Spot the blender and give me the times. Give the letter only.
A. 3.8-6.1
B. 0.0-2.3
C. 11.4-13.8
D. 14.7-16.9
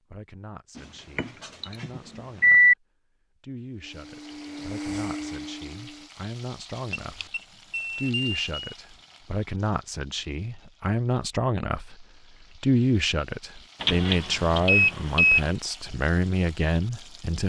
A.